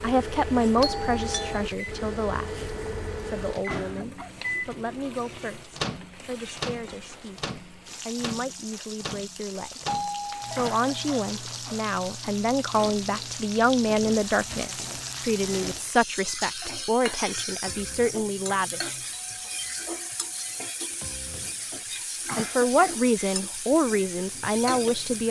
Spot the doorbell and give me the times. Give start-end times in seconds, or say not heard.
0.8-1.6, 9.8-11.2, 19.1-20.6.